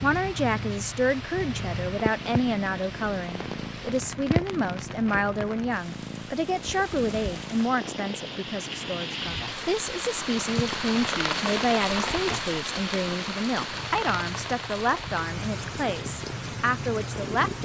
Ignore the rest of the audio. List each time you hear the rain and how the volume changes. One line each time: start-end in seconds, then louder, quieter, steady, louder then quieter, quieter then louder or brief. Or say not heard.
0.0-17.5 louder then quieter.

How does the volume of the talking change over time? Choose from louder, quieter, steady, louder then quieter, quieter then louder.
steady.